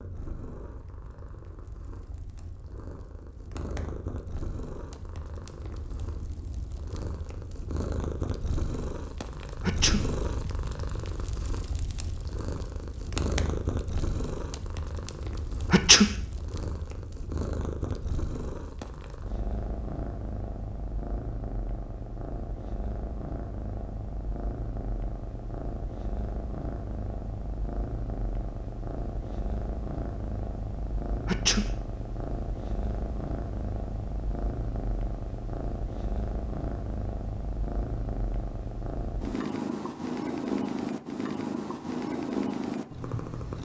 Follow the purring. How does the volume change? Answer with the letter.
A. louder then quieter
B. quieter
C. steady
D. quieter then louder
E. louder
E.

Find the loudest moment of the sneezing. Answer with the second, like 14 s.
16 s.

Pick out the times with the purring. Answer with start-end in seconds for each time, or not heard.
0.0-43.5.